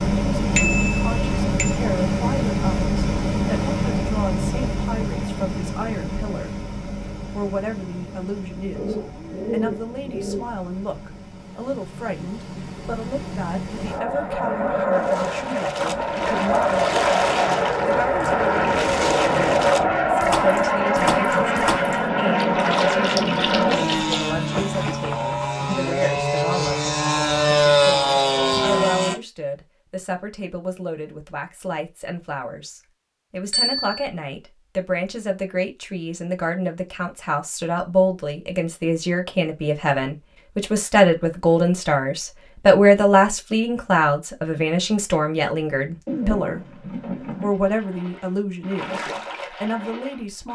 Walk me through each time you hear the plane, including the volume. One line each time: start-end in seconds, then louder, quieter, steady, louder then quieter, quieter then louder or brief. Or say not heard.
0.0-29.1 quieter then louder.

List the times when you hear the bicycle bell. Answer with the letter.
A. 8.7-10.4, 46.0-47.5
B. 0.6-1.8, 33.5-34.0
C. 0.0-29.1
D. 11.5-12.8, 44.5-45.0
B.